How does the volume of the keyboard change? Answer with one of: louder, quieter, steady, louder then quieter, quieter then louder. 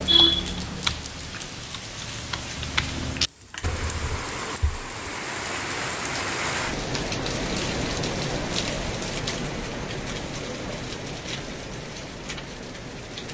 quieter then louder.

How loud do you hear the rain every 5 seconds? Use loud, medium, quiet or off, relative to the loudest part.
medium, loud, medium.